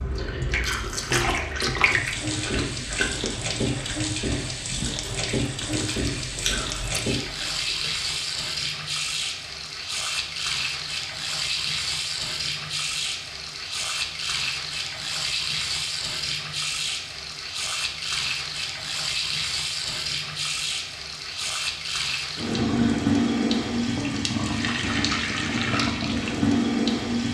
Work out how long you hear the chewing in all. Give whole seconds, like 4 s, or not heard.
8 s.